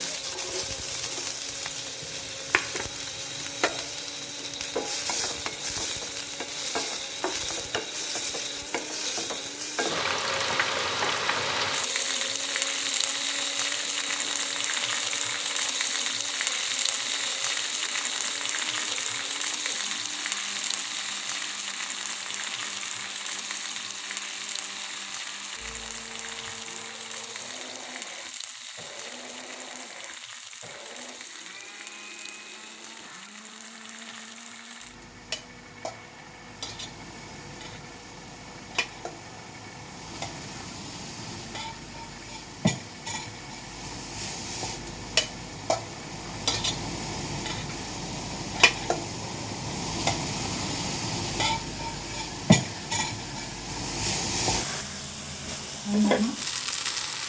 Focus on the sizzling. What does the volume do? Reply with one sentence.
The loudness of the sizzling goes down, then up.